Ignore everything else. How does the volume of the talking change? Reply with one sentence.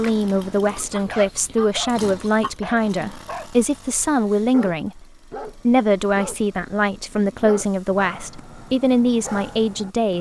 The volume of the talking stays about the same.